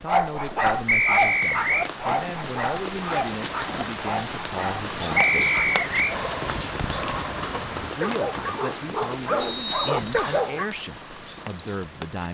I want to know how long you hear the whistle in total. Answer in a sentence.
You can hear the whistle for 3 seconds altogether.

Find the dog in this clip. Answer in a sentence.
The dog can be heard from 0.1 to 10.7 s.